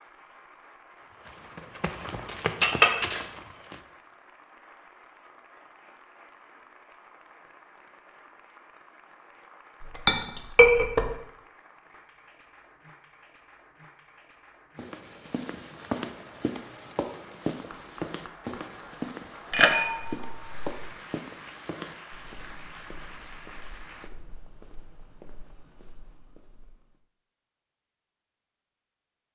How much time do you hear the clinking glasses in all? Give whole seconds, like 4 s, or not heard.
3 s.